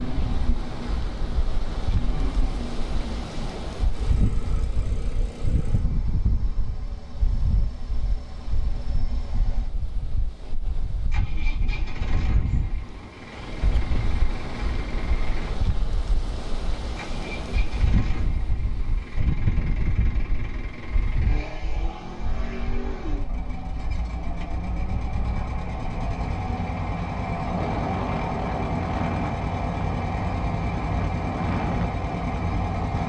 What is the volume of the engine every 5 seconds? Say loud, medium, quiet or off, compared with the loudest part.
medium, quiet, medium, medium, medium, loud, loud.